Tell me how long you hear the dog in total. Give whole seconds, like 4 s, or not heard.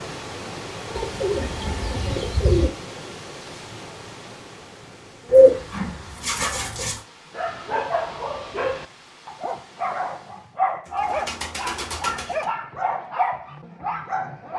7 s.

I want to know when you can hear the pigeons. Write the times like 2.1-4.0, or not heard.
0.9-2.7, 5.3-7.0, 10.8-12.4.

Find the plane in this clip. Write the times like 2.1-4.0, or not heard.
not heard.